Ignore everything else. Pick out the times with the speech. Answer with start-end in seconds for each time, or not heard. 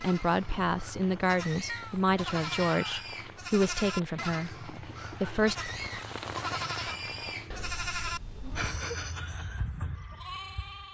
0.0-5.5.